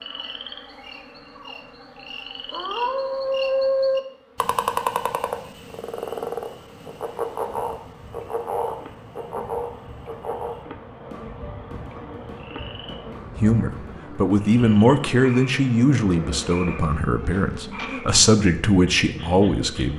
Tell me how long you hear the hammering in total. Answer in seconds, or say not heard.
not heard.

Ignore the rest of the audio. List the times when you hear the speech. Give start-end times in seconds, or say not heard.
13.4-19.9.